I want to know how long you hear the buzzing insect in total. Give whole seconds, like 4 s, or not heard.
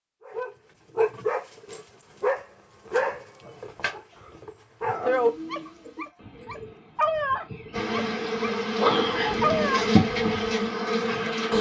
4 s.